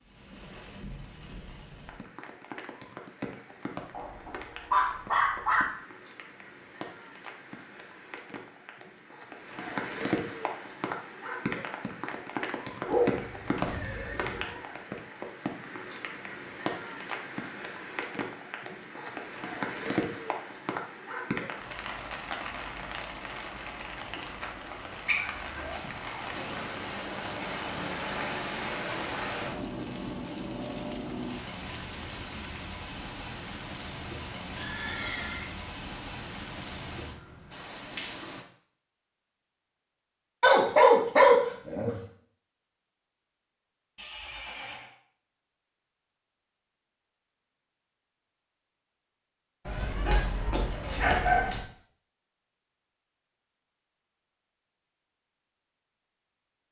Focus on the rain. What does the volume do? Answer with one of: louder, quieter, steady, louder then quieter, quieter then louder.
louder.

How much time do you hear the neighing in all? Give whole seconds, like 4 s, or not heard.
3 s.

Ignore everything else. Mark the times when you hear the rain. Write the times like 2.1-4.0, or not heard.
0.0-38.5.